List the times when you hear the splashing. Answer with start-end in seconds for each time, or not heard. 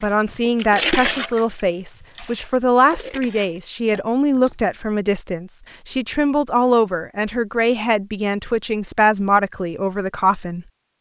0.0-4.5.